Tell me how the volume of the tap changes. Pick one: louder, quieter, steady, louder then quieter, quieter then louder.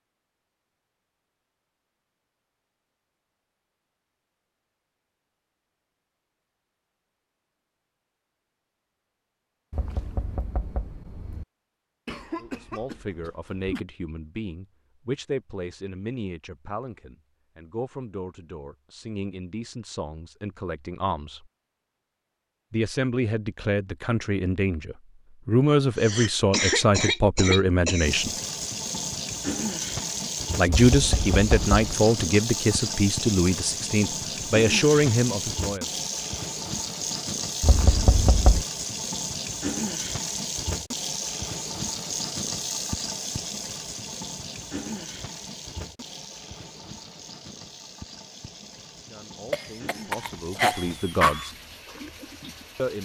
quieter.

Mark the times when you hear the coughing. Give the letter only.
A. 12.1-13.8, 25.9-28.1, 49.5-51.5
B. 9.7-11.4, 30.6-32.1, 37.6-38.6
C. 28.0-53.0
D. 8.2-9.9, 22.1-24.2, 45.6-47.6
A.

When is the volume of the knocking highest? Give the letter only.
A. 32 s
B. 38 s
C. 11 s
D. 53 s
B.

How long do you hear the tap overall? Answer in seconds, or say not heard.
25 s.